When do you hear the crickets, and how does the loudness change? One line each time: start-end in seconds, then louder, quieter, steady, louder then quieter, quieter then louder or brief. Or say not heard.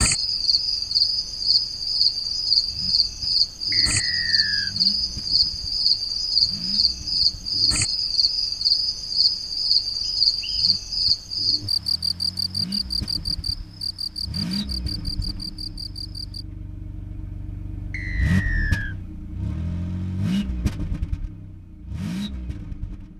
0.0-16.4 quieter.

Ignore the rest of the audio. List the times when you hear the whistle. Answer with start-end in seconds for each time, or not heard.
3.7-4.8, 10.1-10.7, 17.9-18.9.